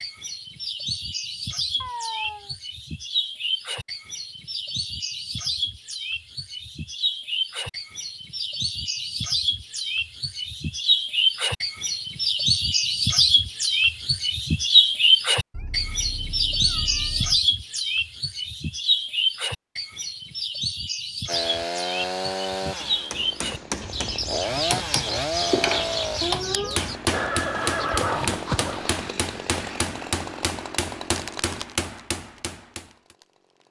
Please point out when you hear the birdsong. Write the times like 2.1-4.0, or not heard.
0.0-26.9.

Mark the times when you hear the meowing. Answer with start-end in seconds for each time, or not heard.
1.8-2.5, 15.5-17.4, 26.2-26.8.